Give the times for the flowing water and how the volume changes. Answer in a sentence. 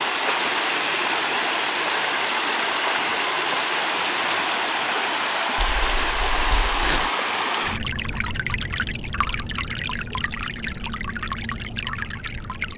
You can hear the flowing water from 0.0 to 12.7 s, getting quieter.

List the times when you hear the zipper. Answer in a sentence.
You can hear the zipper from 5.5 to 7.1 s.